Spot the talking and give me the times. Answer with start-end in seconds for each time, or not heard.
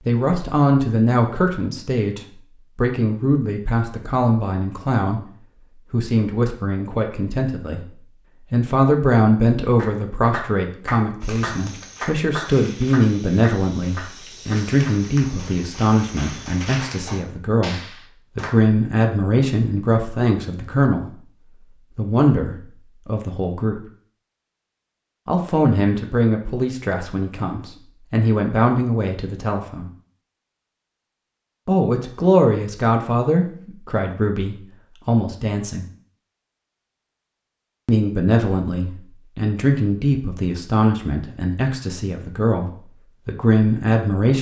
0.0-5.2, 5.9-21.1, 21.9-23.9, 25.2-29.9, 31.6-35.9, 37.9-44.3.